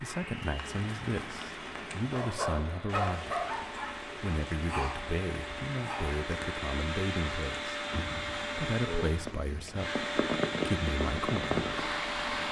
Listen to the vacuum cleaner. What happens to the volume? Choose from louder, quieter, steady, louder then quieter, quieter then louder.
louder.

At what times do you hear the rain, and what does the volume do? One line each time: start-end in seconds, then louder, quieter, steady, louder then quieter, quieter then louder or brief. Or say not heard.
0.1-12.4 louder.